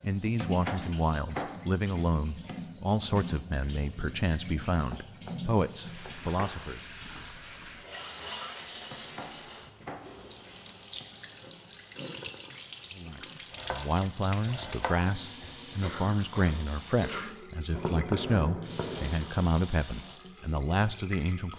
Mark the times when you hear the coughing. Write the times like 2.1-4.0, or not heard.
15.8-17.3.